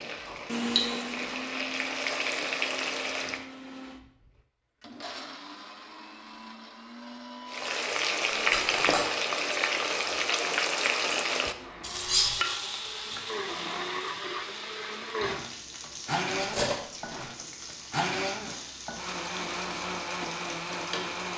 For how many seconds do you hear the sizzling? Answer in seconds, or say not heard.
17 s.